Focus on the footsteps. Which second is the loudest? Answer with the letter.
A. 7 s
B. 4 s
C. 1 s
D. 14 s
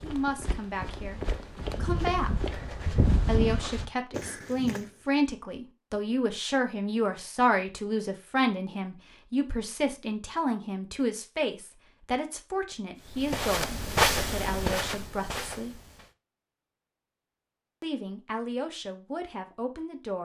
D.